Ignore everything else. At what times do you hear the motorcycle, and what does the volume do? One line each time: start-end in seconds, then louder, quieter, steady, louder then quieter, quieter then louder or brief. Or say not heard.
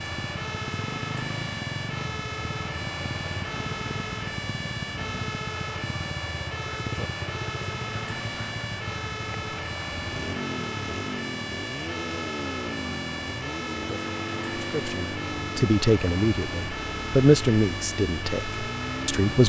0.0-19.4 steady.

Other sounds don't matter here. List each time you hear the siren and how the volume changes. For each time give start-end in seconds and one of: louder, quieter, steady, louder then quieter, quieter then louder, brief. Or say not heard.
0.0-19.4 steady.